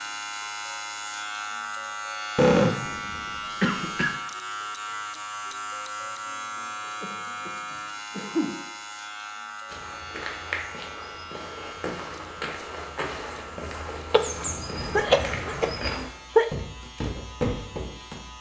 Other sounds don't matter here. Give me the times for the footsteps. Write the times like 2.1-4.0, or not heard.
9.7-18.2.